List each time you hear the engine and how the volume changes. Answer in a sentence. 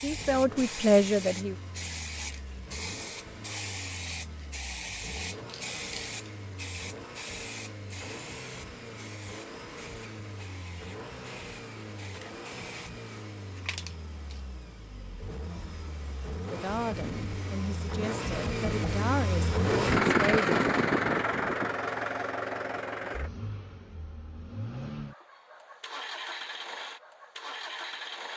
You can hear the engine from 0.0 to 28.3 s, getting louder then quieter.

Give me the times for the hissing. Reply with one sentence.
You can hear the hissing from 0.0 to 14.4 s.